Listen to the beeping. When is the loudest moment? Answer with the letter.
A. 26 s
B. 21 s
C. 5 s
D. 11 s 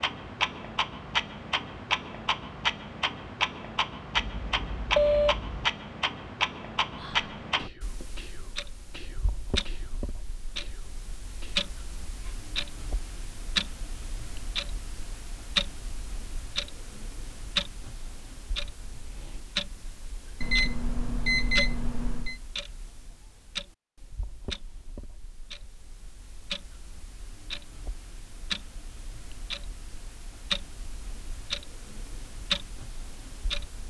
C.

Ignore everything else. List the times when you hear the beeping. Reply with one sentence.
The beeping can be heard from 4.2 to 5.7 s and from 20.4 to 22.4 s.